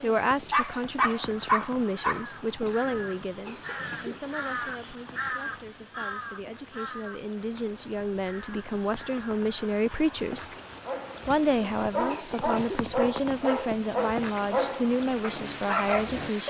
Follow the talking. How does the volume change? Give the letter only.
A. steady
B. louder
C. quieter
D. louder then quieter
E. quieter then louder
E.